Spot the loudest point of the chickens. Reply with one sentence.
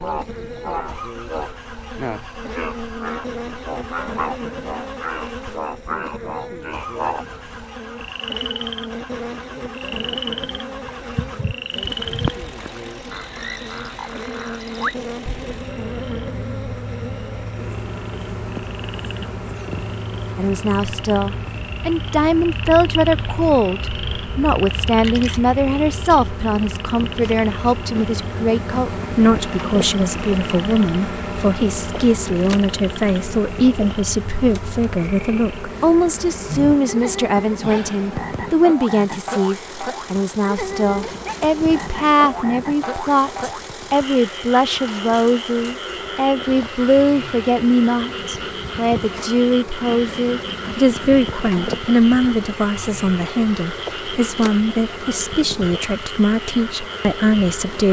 The volume of the chickens peaks at 12 seconds.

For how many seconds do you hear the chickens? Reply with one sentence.
The chickens can be heard for 2 seconds in total.